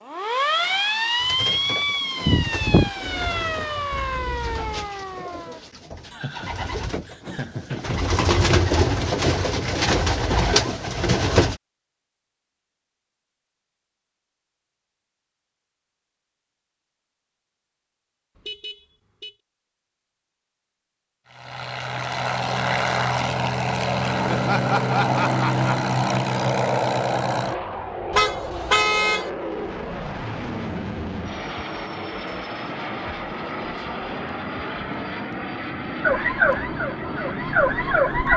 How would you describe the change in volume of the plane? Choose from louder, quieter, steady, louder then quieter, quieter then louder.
quieter.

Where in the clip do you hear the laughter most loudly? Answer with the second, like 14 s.
25 s.